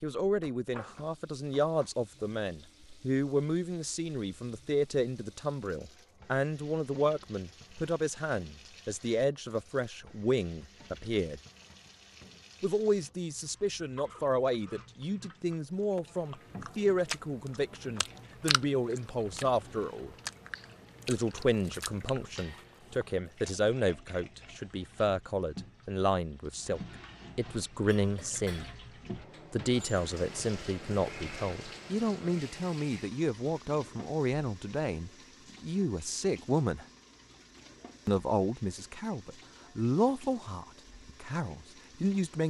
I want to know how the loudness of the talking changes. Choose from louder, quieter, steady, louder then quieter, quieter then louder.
steady.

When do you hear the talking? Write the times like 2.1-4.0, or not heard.
0.0-11.4, 12.6-20.1, 21.1-28.6, 29.5-36.9, 38.0-42.4.